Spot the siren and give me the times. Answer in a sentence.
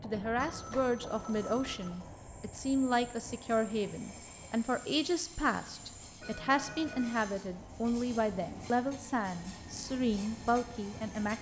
You can't hear the siren here.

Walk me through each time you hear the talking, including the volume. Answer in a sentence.
The talking can be heard from 0.0 to 11.3 s, at a steady volume.